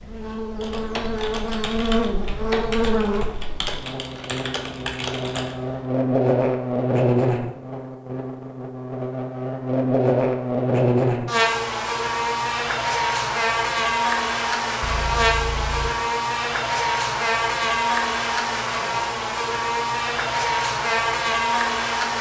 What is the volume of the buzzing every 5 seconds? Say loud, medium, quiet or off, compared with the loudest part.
medium, loud, loud, loud, loud.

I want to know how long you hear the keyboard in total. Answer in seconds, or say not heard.
5 s.